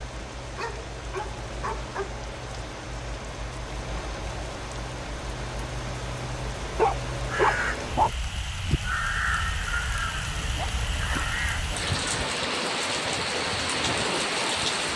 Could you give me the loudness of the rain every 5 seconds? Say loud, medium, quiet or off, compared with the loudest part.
medium, medium, loud.